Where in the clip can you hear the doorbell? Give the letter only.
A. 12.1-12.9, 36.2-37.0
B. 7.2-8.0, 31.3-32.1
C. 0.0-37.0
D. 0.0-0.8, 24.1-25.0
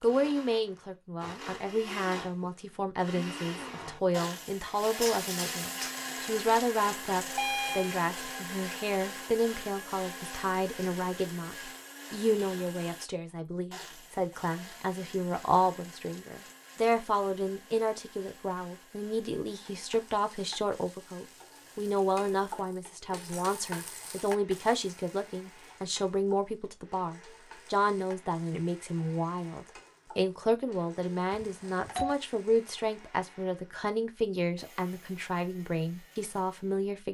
B.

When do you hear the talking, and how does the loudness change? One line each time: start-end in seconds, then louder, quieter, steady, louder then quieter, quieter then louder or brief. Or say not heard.
0.0-37.0 steady.